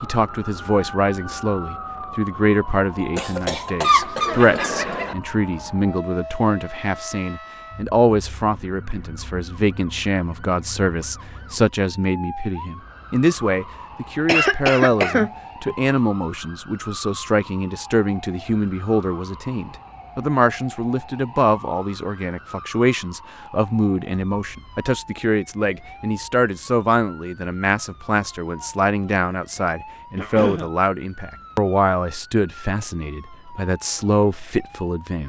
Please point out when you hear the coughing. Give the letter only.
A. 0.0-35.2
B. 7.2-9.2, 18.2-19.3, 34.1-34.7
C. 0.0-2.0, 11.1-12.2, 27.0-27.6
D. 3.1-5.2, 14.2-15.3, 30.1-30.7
D.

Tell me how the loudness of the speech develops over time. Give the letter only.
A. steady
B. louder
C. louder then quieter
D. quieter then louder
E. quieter
A.